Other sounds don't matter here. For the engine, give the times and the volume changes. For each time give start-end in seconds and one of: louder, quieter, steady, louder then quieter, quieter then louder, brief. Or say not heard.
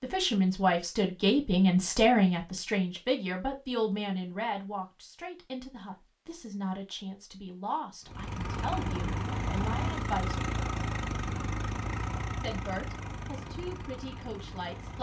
8.1-14.9 quieter.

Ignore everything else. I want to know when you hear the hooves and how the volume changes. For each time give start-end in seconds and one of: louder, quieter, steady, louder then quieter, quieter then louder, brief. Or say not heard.
not heard.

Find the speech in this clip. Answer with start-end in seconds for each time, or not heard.
0.0-10.3, 12.4-14.9.